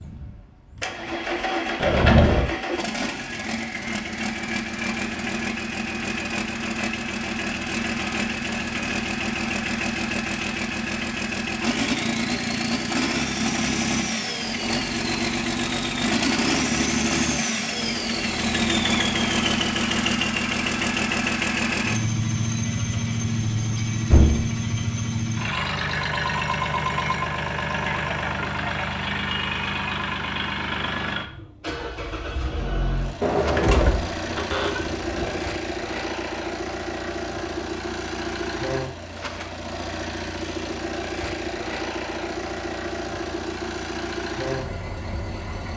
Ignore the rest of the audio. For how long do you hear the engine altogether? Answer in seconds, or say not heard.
46 s.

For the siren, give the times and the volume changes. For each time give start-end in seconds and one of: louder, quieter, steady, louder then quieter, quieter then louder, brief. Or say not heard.
not heard.